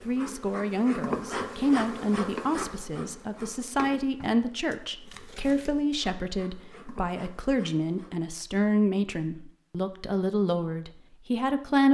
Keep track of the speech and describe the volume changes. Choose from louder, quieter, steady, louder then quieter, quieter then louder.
steady.